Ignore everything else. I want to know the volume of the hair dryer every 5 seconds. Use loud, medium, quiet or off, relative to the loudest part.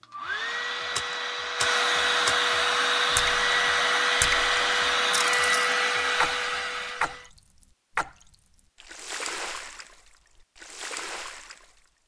loud, loud, off.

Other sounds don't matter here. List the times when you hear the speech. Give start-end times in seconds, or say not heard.
not heard.